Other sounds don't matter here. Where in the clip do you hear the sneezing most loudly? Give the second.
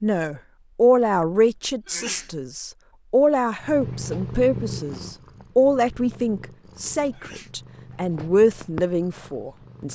2 s.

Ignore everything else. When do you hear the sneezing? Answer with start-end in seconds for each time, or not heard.
1.9-2.4, 7.1-7.5.